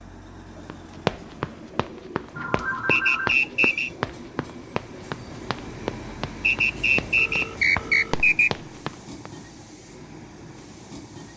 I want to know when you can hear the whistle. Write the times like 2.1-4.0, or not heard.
2.9-3.9, 6.4-8.5.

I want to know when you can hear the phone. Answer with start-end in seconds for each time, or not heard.
2.4-3.4, 7.2-8.2.